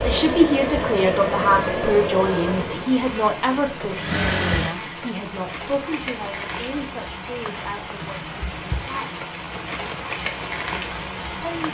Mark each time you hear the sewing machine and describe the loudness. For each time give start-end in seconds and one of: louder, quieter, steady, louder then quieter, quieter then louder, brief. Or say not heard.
0.0-5.0 quieter then louder.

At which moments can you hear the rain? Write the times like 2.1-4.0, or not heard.
0.0-11.6.